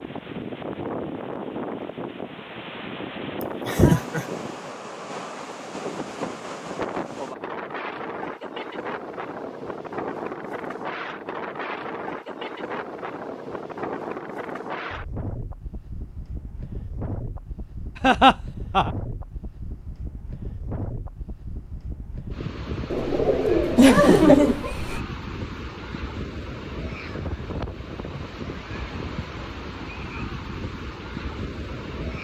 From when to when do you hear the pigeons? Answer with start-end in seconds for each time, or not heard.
22.9-24.6.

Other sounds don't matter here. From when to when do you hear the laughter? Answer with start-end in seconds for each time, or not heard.
3.4-4.2, 18.0-18.9, 23.8-25.0.